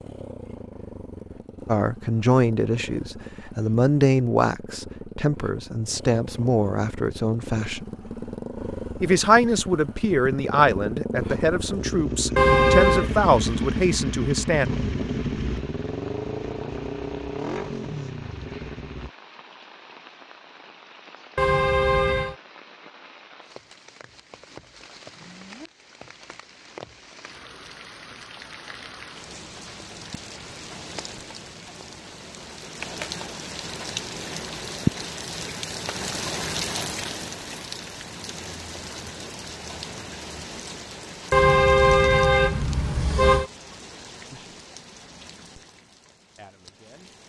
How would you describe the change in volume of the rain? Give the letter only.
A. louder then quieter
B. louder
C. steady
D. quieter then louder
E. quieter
A.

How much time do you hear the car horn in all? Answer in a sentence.
You can hear the car horn for 4 seconds altogether.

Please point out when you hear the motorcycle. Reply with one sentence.
The motorcycle can be heard from 0.0 to 19.1 s.